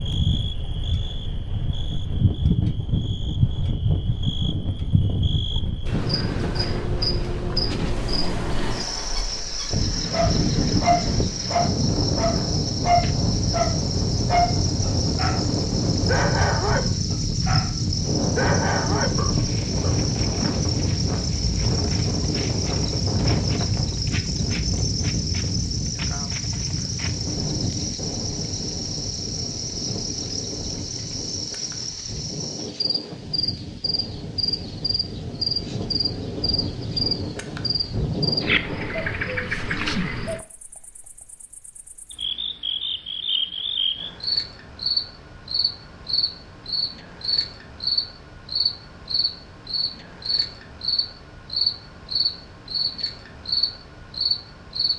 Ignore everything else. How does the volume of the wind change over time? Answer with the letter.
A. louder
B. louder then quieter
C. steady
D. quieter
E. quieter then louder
B.